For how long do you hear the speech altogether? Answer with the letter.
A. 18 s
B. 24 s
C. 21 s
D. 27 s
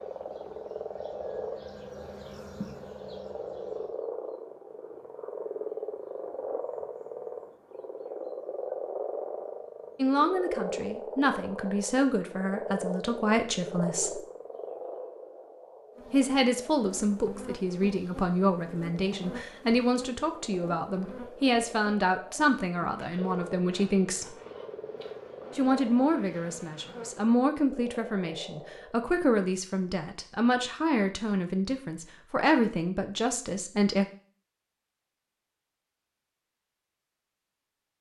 C.